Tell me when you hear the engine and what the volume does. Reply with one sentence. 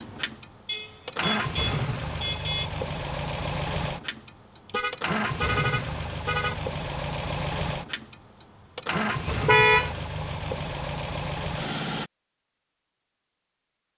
The engine can be heard from 0.0 to 12.1 s, at a steady volume.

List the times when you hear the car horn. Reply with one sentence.
The car horn can be heard from 0.7 to 2.7 s, from 4.7 to 6.6 s and from 9.4 to 9.9 s.